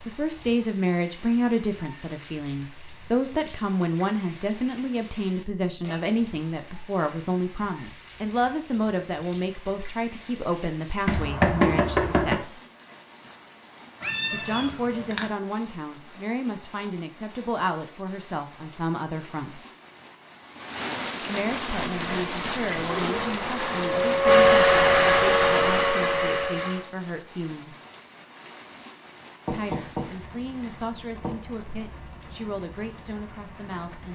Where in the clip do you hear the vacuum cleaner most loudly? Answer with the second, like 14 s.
25 s.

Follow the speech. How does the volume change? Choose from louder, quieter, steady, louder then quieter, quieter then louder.
quieter.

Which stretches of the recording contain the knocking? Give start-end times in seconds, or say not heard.
11.1-12.4, 29.4-31.4.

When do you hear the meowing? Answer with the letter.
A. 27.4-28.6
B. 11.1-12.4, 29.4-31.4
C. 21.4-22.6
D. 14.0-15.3
D.